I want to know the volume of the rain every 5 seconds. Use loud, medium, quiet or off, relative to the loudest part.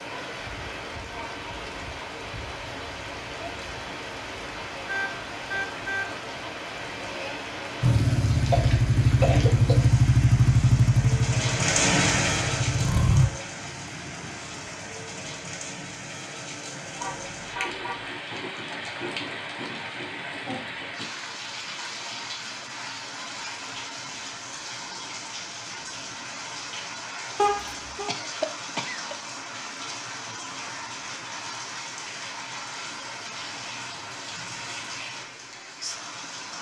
medium, medium, loud, medium, medium, medium, medium, medium.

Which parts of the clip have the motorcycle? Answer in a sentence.
You can hear the motorcycle from 7.8 to 13.3 s.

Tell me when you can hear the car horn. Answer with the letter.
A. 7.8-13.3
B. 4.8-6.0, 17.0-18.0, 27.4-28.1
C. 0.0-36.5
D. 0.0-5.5
B.